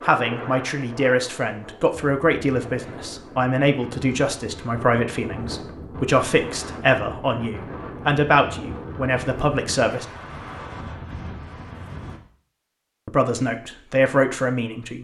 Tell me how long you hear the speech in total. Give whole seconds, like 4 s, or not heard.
12 s.